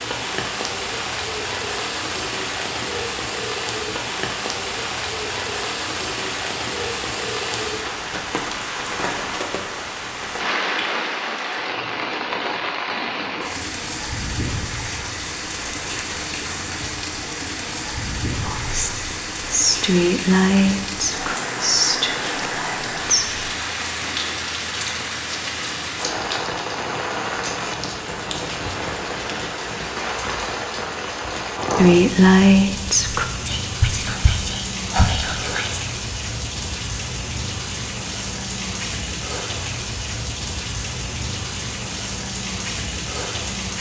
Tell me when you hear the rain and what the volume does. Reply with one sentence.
You can hear the rain from 0.0 to 43.7 s, at a steady volume.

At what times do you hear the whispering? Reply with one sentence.
You can hear the whispering from 18.4 to 23.5 s and from 31.8 to 35.8 s.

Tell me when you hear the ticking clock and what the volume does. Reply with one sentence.
You can't hear the ticking clock here.